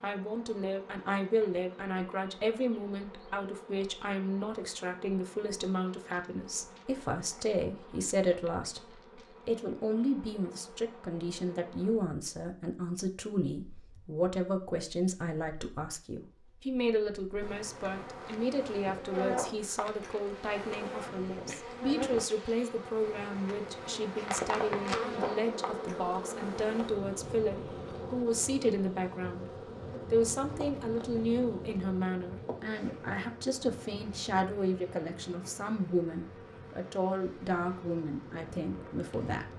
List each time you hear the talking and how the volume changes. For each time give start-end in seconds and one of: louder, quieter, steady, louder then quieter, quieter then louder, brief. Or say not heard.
0.0-29.4 steady
30.1-39.5 steady.